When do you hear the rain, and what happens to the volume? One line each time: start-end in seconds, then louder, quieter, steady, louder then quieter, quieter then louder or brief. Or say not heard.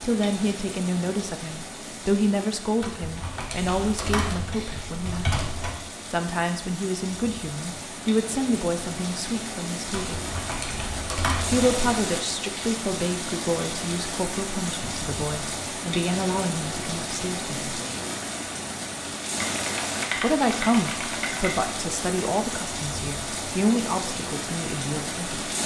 0.0-25.6 louder.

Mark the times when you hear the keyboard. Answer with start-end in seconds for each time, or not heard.
2.8-5.8, 9.9-11.7, 19.2-21.7.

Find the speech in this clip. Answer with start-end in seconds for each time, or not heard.
0.0-10.2, 11.4-17.8, 20.1-25.5.